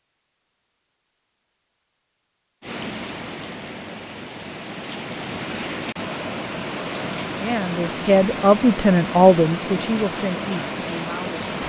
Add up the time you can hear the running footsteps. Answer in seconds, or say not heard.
not heard.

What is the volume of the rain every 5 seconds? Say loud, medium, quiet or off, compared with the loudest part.
medium, loud, loud.